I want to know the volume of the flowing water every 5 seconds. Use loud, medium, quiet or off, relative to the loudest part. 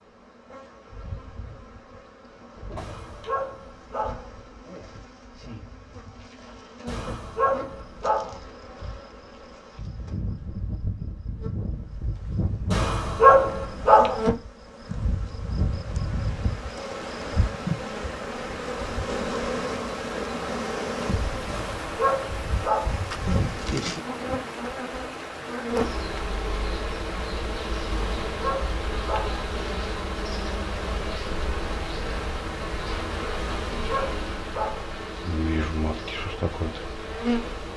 off, off, off, loud, loud, loud, loud, medium.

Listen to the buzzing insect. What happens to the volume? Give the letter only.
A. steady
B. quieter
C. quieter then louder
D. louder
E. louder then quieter
D.